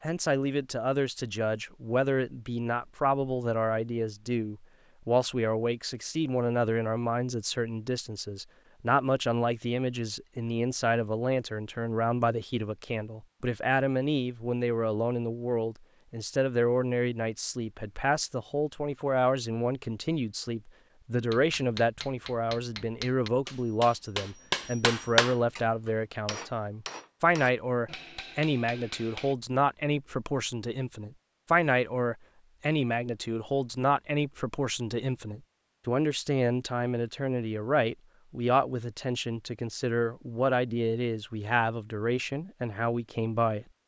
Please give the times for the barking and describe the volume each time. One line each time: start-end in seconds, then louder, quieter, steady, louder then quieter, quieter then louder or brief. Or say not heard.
not heard.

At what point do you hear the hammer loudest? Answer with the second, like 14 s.
25 s.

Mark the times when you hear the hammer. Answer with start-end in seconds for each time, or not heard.
21.3-29.4.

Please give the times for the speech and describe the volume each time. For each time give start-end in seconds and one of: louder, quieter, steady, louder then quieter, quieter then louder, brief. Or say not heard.
0.0-43.6 steady.